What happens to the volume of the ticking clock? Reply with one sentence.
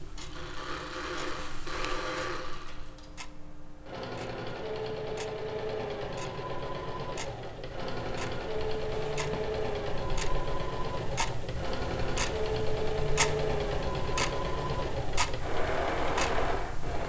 The volume of the ticking clock goes up.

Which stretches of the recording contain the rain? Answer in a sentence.
You can't hear the rain here.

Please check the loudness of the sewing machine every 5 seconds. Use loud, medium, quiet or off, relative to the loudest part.
medium, loud, loud, loud.